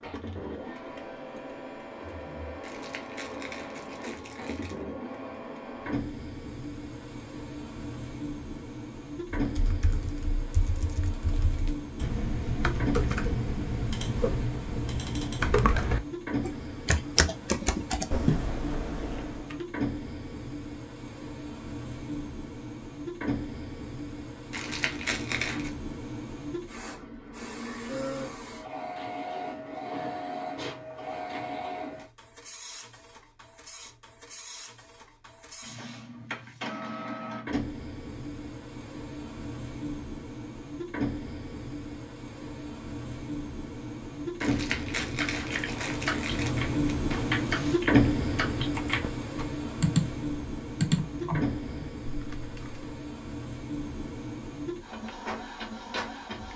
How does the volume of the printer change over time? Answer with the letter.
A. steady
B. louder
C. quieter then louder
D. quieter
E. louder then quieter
B.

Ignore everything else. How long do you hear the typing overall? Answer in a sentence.
The typing can be heard for 18 seconds in total.